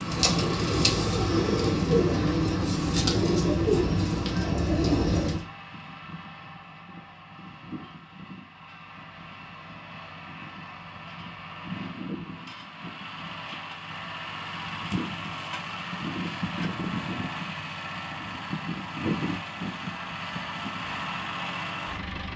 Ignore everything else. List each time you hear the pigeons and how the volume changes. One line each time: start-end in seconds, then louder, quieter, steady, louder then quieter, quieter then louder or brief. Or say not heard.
0.0-5.5 steady.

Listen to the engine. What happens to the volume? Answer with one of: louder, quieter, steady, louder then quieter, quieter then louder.
quieter then louder.